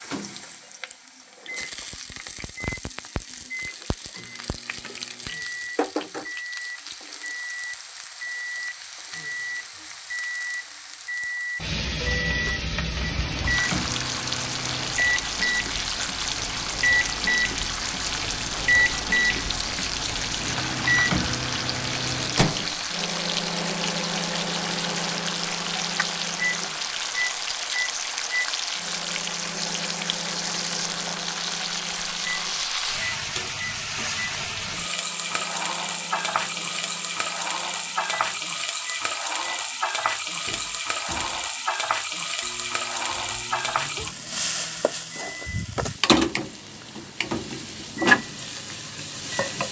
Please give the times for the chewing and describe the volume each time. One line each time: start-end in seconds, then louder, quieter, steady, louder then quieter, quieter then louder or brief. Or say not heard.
not heard.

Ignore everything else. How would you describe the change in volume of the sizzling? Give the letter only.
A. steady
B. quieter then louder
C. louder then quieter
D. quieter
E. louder
E.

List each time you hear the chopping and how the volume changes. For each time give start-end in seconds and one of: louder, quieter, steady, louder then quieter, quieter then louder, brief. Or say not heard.
not heard.